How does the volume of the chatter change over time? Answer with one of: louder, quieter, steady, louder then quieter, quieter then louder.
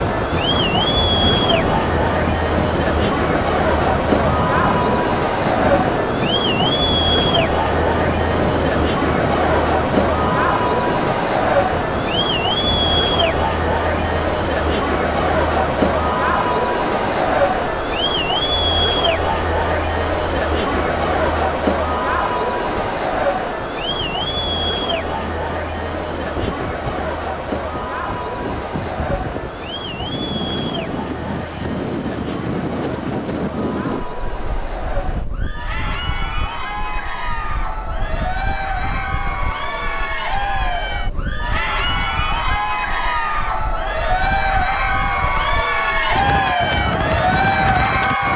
quieter then louder.